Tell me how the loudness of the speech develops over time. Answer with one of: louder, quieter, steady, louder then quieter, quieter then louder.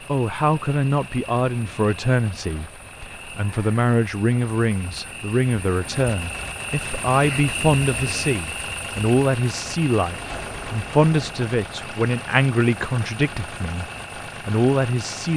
steady.